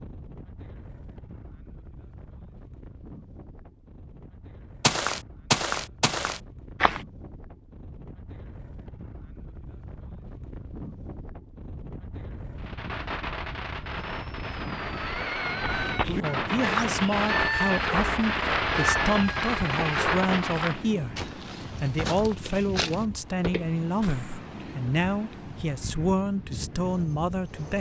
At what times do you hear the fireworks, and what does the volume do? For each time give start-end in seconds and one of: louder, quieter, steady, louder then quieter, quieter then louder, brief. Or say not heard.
12.6-20.9 louder.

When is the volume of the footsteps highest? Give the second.
6 s.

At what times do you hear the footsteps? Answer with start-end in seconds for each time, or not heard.
4.8-7.0, 15.6-24.4.